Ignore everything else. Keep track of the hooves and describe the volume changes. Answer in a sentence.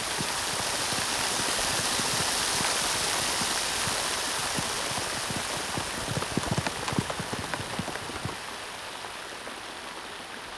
The volume of the hooves goes up.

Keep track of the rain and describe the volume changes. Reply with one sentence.
The loudness of the rain goes down.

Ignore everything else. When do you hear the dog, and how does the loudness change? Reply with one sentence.
You can't hear the dog here.